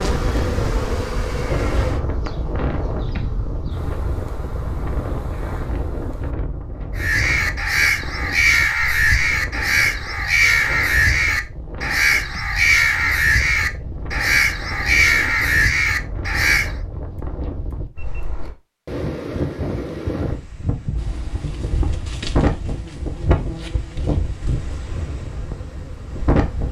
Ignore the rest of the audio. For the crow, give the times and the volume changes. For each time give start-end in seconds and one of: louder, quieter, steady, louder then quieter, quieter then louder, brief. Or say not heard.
7.0-16.8 steady.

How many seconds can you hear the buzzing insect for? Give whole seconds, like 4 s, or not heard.
12 s.